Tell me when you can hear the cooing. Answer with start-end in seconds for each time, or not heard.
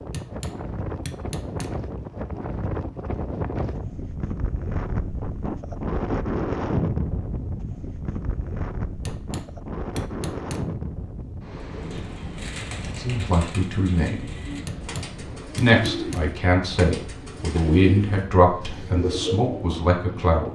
11.6-19.9.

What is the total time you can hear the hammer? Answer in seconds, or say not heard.
5 s.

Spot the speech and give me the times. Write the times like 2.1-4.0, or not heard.
12.9-14.3, 15.6-20.5.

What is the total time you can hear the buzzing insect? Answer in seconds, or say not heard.
not heard.